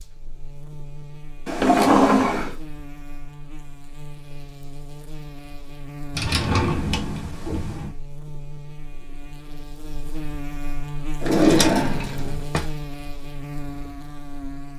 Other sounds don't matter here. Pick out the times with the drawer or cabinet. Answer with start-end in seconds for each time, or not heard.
1.4-2.5, 6.1-7.9, 11.2-12.7.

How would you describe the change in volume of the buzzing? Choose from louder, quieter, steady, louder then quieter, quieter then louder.
louder.